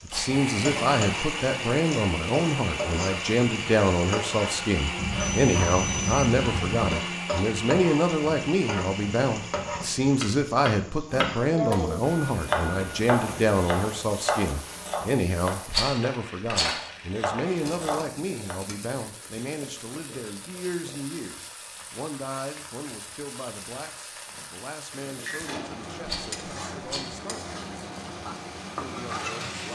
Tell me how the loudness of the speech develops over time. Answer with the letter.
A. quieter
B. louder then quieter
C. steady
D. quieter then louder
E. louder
A.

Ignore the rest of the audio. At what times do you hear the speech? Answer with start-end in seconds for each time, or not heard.
0.1-29.6.